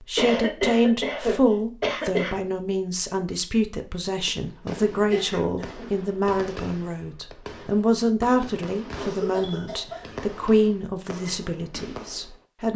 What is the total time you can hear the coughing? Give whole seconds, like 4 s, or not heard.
4 s.